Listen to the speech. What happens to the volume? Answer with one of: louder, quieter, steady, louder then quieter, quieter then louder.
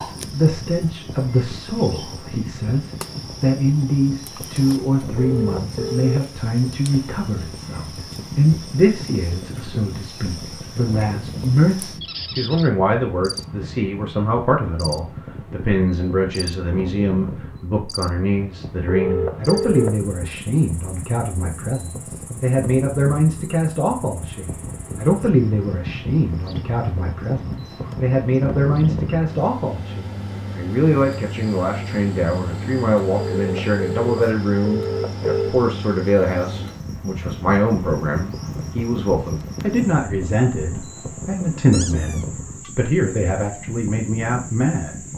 steady.